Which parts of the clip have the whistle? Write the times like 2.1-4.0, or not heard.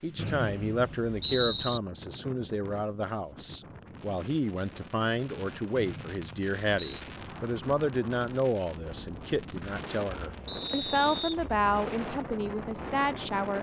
0.1-1.8, 5.8-7.0, 10.4-11.4.